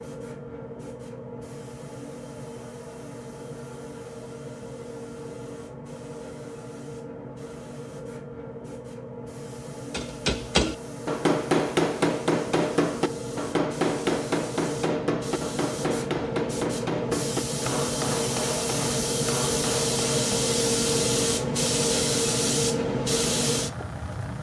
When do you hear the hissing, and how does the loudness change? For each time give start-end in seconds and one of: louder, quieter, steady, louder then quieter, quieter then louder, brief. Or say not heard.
0.0-24.3 louder.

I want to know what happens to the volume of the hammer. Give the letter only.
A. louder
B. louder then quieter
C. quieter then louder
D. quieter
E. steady
D.